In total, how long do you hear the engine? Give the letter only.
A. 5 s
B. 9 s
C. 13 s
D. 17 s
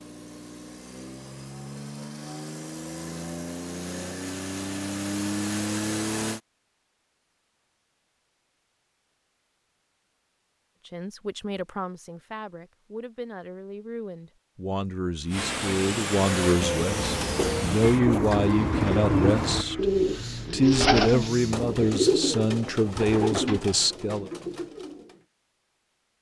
C.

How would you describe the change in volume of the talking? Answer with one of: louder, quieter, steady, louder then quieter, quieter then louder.
louder.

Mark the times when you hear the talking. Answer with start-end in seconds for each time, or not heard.
10.8-19.9, 20.5-24.3.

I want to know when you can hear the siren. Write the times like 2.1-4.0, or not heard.
not heard.